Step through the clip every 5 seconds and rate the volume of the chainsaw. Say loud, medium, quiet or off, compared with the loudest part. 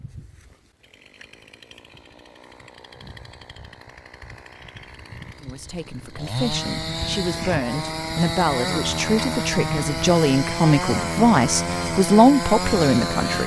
quiet, loud, loud.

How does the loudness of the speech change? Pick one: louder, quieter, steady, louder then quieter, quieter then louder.
louder.